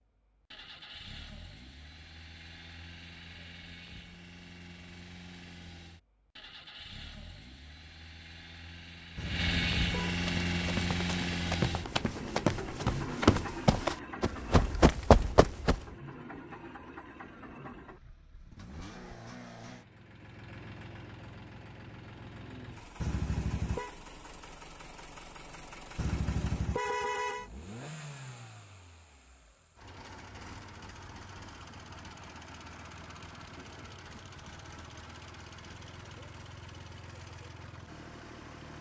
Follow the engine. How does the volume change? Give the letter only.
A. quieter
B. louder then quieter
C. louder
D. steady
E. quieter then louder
B.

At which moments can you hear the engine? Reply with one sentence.
You can hear the engine from 0.0 to 38.7 s.